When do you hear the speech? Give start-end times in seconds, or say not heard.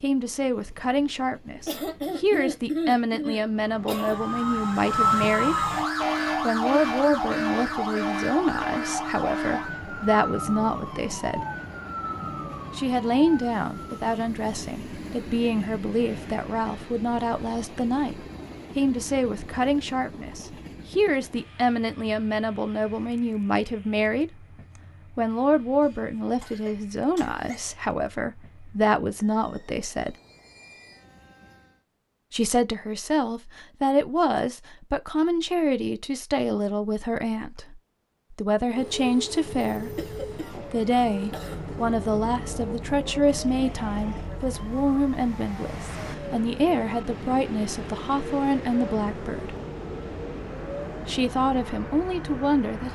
0.0-5.7, 6.4-11.4, 12.8-24.4, 25.1-30.1, 32.3-49.5, 51.0-52.8.